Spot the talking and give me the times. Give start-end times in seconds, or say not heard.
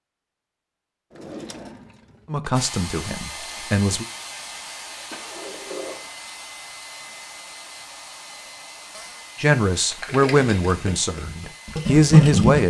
2.3-4.0, 9.3-12.6.